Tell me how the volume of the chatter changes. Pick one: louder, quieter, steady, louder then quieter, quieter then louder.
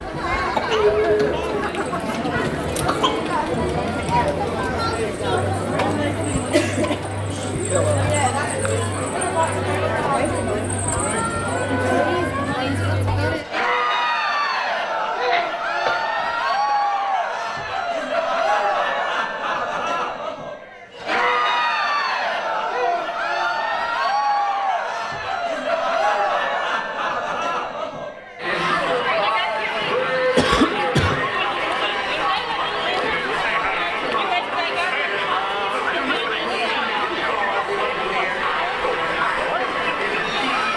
steady.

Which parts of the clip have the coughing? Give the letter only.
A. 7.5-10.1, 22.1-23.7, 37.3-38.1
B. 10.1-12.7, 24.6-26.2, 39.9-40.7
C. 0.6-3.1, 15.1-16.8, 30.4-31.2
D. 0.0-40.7
C.